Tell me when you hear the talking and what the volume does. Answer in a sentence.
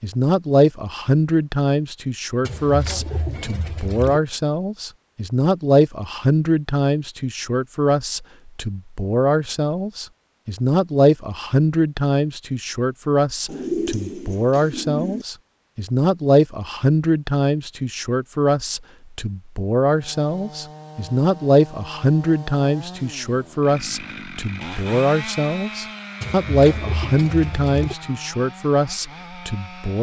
You can hear the talking from 0.0 to 29.9 s, at a steady volume.